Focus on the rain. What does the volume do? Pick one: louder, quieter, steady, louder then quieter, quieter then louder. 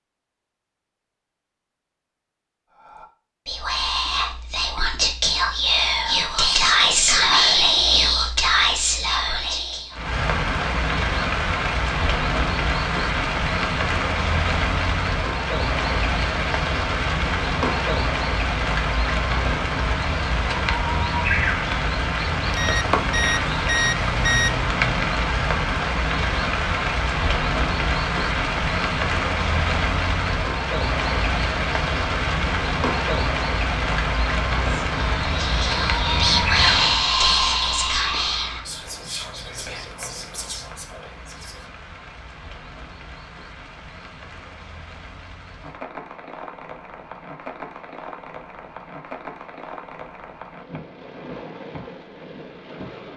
quieter.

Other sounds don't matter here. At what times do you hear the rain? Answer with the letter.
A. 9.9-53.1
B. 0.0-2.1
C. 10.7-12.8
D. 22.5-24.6
A.